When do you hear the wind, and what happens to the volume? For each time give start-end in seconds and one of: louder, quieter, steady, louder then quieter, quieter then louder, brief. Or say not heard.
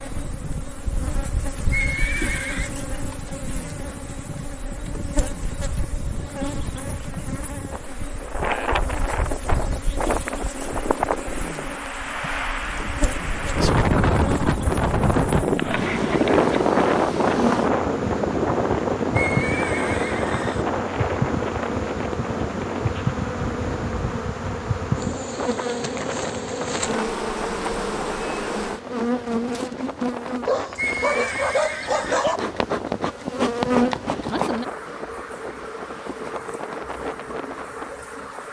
0.0-38.4 louder then quieter.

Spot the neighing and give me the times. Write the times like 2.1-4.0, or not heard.
1.7-2.7, 19.1-20.6, 30.8-32.2.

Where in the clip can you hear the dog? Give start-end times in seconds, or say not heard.
30.4-32.4.